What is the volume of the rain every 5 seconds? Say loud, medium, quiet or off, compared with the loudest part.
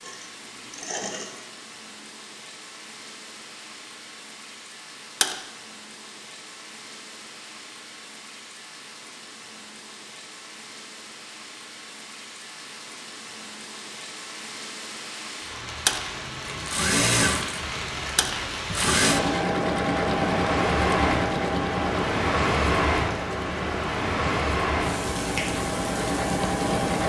quiet, quiet, quiet, medium, loud, medium.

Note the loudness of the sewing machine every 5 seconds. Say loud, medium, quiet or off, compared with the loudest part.
quiet, off, off, loud, loud, loud.